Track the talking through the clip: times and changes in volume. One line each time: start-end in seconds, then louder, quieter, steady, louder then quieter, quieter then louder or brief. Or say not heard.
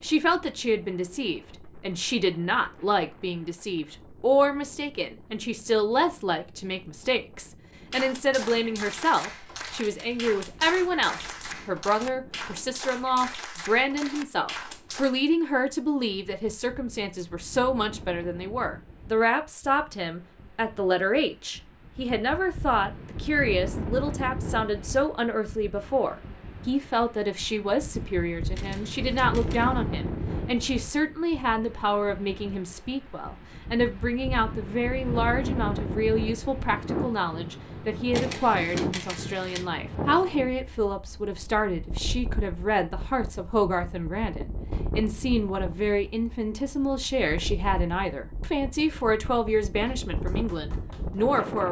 0.0-51.6 steady.